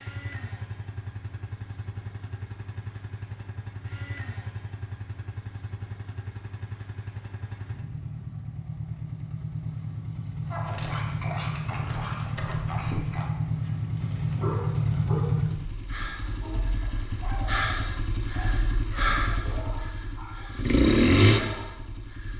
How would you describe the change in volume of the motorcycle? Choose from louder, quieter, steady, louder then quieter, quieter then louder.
louder.